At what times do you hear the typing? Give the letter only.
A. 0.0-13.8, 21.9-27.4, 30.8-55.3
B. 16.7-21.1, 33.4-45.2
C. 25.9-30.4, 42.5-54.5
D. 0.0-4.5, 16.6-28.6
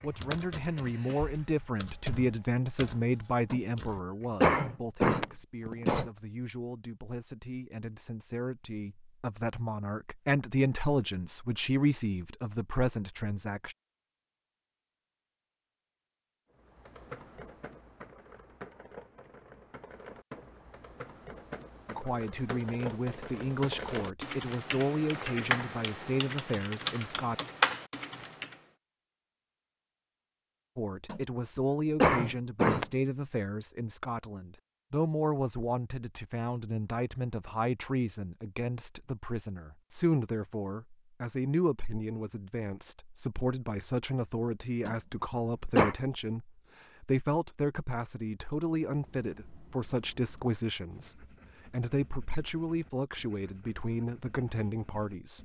D.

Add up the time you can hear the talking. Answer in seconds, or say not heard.
44 s.